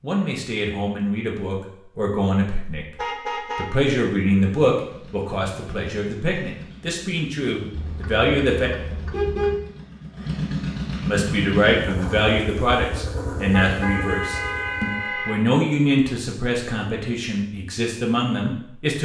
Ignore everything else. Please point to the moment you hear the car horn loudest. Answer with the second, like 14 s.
9 s.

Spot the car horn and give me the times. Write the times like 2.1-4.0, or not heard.
3.0-3.6, 7.7-9.6, 13.5-15.4.